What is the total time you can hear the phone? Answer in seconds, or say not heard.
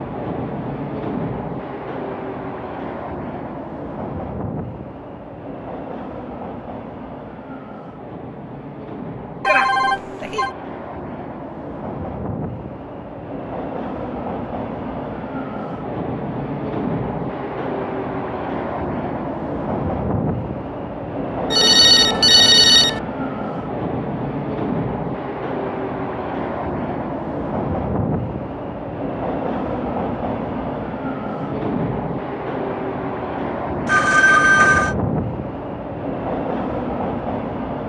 4 s.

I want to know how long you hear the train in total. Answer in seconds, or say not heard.
38 s.